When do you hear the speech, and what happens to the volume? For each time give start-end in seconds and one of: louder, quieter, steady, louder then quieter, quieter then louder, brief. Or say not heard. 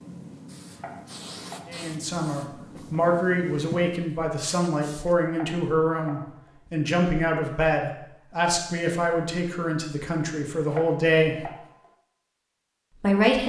1.6-11.5 steady
12.9-13.4 brief.